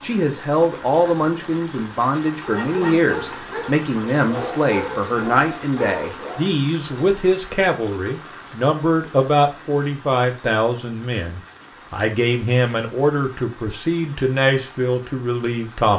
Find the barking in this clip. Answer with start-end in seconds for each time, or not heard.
2.4-6.5.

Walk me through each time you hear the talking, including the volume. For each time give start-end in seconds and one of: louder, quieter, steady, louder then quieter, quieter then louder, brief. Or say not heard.
0.0-15.9 steady.